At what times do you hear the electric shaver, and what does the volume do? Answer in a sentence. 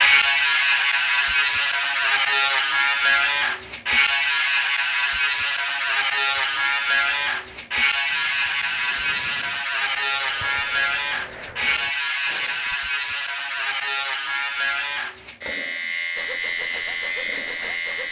You can hear the electric shaver from 0.0 to 18.0 s, getting quieter.